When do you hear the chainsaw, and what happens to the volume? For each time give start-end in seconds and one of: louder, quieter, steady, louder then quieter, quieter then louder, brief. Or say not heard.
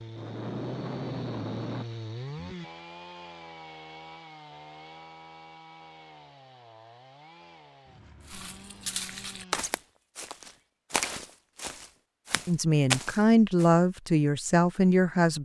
0.0-9.7 quieter.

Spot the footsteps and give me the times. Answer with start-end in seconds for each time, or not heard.
8.2-13.7.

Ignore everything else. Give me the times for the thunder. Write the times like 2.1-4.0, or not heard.
0.1-1.9.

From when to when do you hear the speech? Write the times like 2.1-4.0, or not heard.
12.4-15.4.